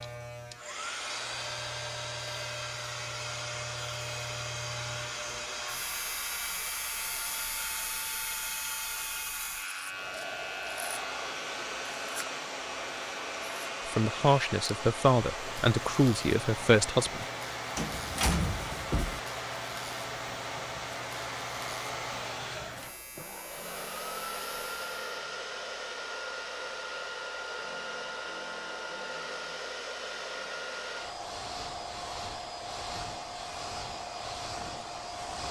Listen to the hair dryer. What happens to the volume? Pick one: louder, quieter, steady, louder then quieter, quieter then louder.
steady.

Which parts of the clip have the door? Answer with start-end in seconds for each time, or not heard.
17.8-19.2.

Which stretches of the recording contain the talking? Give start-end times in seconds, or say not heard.
13.8-17.2.